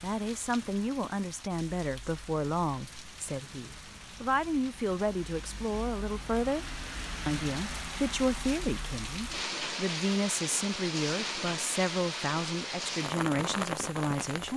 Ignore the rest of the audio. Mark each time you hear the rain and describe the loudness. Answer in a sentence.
You can hear the rain from 0.0 to 14.5 s, getting louder.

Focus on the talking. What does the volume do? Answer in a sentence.
The volume of the talking stays about the same.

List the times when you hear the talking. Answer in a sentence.
The talking can be heard from 0.0 to 14.5 s.